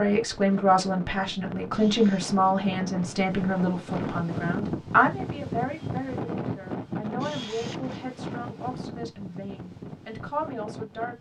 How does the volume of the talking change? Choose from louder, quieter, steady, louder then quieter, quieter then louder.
quieter.